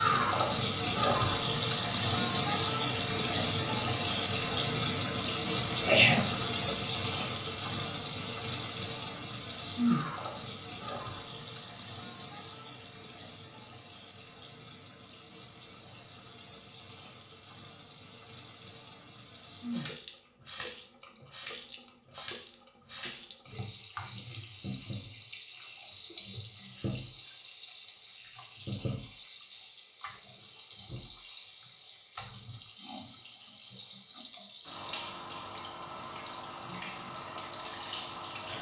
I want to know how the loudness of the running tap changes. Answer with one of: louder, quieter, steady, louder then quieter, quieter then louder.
quieter.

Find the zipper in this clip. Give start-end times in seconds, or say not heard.
not heard.